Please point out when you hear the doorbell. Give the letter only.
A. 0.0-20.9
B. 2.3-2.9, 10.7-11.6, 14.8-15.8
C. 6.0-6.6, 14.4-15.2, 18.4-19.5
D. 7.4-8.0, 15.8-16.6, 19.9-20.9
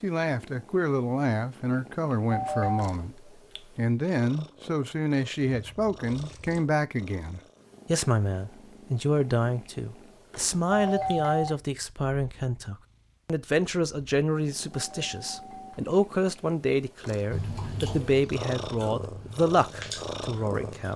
B.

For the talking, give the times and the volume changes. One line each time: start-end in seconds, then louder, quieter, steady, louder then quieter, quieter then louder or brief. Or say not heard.
0.0-20.9 steady.